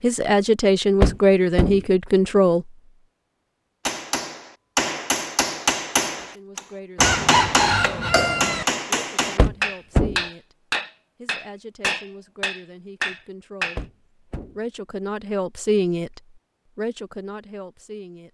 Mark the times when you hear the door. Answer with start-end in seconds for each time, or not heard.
1.0-1.9, 9.3-10.2, 13.8-14.6.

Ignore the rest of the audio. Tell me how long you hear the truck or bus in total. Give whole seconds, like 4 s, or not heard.
not heard.